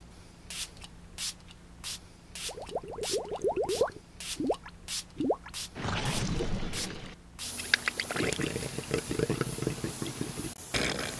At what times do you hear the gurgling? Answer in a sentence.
The gurgling can be heard from 2.5 to 11.1 s.